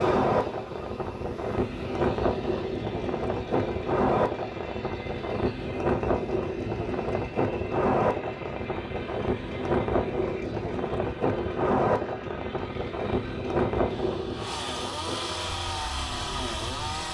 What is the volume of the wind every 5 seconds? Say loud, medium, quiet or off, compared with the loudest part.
loud, loud, loud, quiet.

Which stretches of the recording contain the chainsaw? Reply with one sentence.
The chainsaw can be heard from 0.0 to 17.0 s.